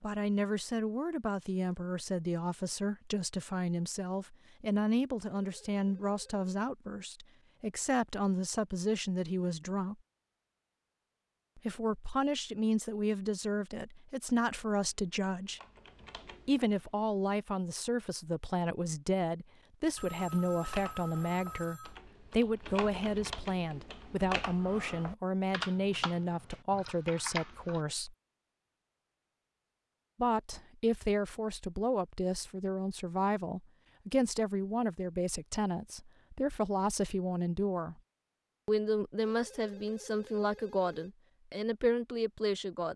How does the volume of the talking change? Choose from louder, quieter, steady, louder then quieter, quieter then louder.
steady.